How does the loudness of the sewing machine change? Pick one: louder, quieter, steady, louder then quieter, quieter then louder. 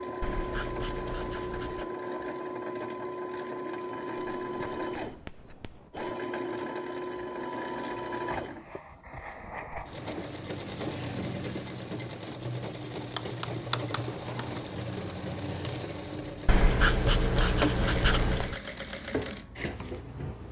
steady.